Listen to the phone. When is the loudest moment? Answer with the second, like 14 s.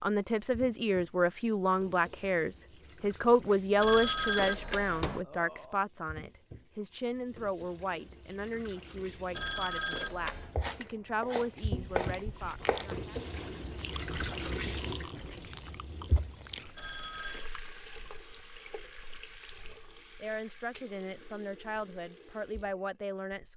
4 s.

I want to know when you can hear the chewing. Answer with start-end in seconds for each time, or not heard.
11.6-16.9.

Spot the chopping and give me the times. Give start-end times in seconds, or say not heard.
10.3-12.9.